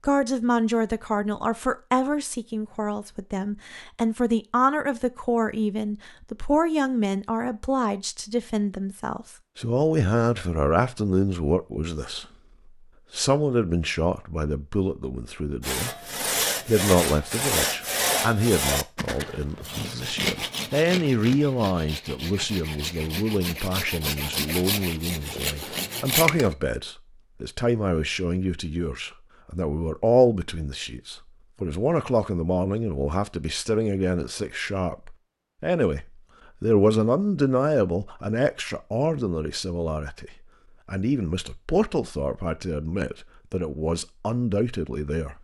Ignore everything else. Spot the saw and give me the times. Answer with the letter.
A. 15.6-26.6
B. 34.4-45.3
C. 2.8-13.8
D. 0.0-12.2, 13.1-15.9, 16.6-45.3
A.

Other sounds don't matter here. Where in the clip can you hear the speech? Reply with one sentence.
The speech can be heard from 0.0 to 12.2 s, from 13.1 to 15.9 s and from 16.6 to 45.3 s.